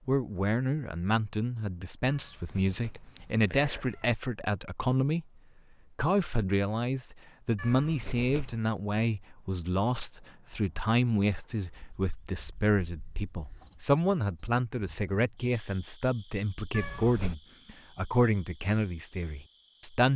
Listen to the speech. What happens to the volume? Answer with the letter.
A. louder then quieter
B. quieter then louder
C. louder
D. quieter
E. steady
E.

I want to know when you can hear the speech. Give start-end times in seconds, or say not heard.
0.1-5.2, 6.0-20.1.